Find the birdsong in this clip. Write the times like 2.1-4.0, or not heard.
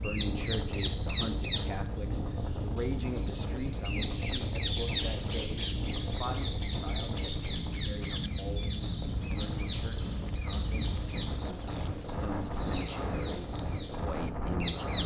0.0-15.0.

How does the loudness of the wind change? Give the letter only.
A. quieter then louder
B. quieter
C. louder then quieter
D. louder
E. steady
E.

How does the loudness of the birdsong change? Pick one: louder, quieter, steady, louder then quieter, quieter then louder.
quieter.